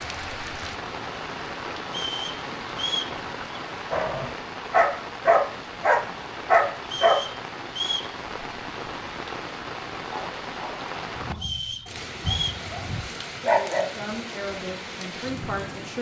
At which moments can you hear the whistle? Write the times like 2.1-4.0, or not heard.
1.9-3.1, 6.8-8.2, 11.3-12.7.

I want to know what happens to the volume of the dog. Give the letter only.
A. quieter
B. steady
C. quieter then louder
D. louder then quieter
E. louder
C.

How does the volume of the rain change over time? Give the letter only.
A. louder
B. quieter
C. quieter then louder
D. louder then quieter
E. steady
E.